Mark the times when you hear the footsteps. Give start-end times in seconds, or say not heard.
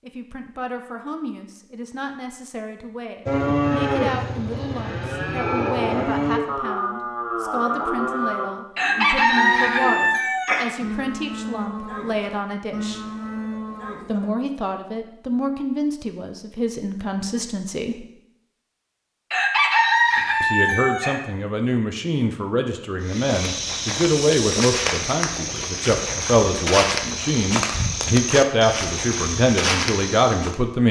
23.0-30.6.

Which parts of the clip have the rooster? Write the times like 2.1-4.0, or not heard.
8.8-10.7, 19.3-21.2.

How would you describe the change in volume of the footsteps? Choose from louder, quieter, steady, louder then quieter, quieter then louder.
steady.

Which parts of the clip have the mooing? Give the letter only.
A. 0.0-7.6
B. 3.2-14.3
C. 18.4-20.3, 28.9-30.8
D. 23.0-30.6
B.